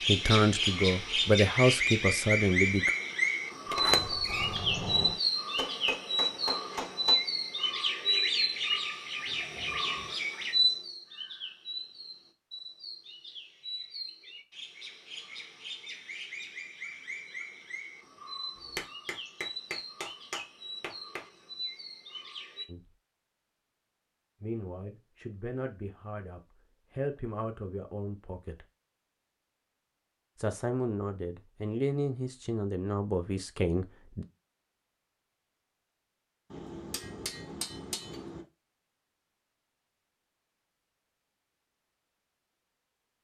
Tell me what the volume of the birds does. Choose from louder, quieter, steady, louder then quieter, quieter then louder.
quieter.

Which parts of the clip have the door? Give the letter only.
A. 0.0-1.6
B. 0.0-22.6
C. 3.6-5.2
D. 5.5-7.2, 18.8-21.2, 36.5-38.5
C.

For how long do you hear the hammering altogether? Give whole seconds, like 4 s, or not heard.
6 s.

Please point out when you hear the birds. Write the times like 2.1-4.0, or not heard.
0.0-22.6.